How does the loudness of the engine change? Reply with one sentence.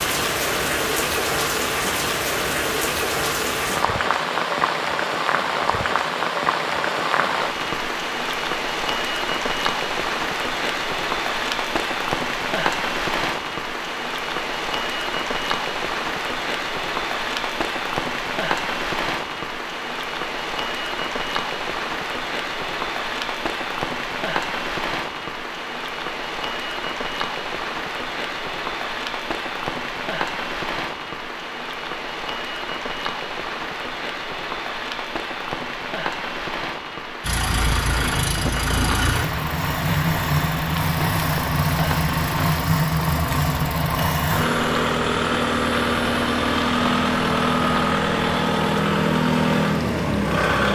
The loudness of the engine stays about the same.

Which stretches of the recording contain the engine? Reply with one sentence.
The engine can be heard from 37.2 to 50.6 s.